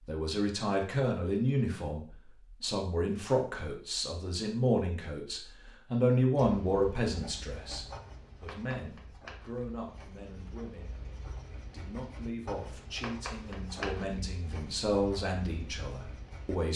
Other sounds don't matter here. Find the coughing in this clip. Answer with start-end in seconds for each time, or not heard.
not heard.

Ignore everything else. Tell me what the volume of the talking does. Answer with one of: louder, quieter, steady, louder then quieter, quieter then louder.
quieter then louder.